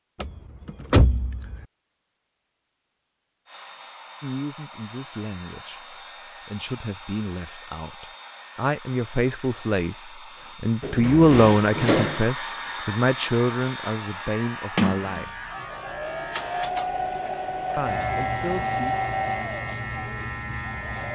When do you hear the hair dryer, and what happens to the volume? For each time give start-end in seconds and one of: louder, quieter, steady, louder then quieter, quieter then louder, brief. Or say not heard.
3.5-21.1 louder.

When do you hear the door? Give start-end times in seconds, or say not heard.
0.2-1.6, 10.8-12.2, 14.8-15.2.